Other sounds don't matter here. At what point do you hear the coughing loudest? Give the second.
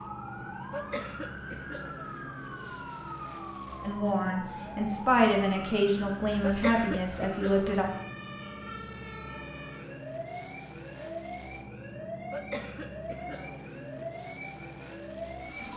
7 s.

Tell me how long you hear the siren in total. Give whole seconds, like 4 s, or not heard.
16 s.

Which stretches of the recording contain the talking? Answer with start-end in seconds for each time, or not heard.
3.8-7.9.